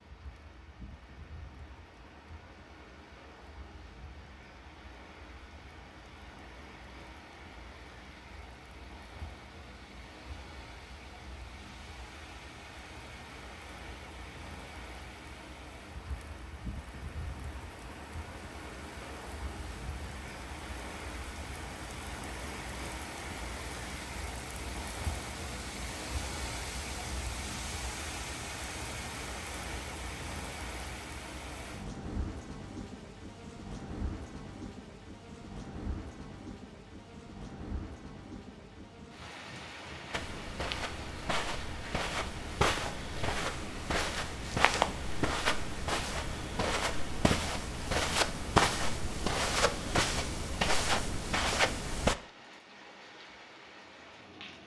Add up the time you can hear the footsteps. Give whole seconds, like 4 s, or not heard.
12 s.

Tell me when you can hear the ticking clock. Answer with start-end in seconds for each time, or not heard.
not heard.